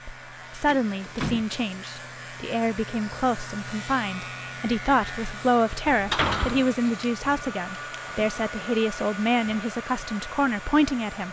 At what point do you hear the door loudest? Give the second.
6 s.